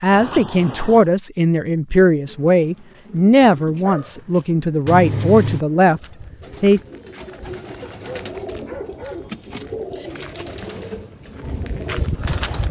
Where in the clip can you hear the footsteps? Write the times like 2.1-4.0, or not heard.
5.9-12.6.